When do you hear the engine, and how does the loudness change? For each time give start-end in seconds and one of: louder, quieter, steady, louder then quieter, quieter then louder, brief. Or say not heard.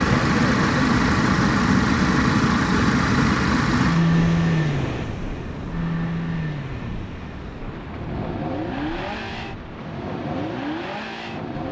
0.0-11.6 quieter.